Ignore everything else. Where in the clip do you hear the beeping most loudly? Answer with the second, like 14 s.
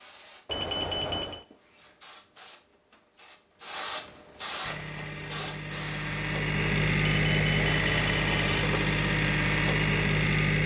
1 s.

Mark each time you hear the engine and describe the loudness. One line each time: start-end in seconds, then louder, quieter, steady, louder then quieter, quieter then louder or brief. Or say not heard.
4.6-10.6 louder.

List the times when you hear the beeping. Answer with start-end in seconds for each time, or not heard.
0.5-1.4, 7.0-8.7.